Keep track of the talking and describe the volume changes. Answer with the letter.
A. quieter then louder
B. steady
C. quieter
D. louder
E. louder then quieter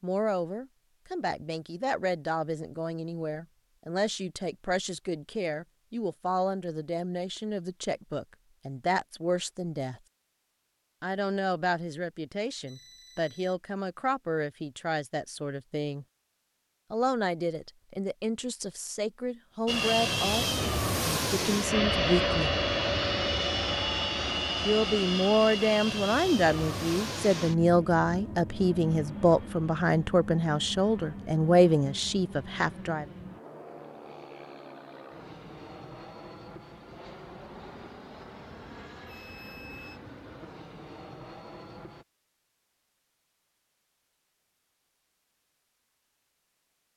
D.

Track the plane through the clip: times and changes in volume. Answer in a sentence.
You can hear the plane from 19.6 to 42.0 s, getting quieter.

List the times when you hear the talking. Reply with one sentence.
The talking can be heard from 0.0 to 10.0 s, from 11.0 to 16.1 s, from 16.9 to 22.5 s and from 24.6 to 33.0 s.